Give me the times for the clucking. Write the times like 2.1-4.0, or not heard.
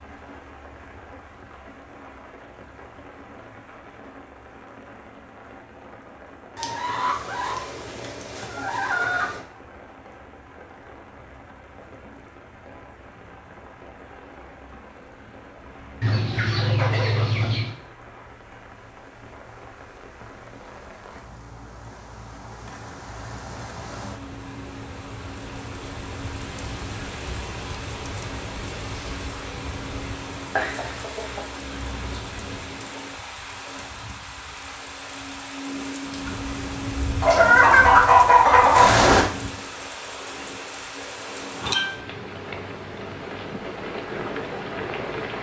6.5-9.4, 16.0-17.8, 30.6-32.2, 37.2-39.2.